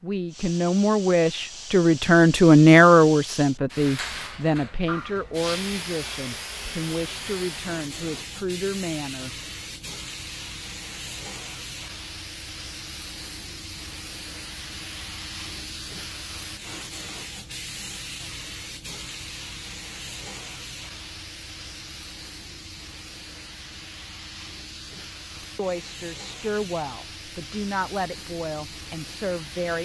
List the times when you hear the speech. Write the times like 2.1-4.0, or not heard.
0.0-9.3, 25.4-29.7.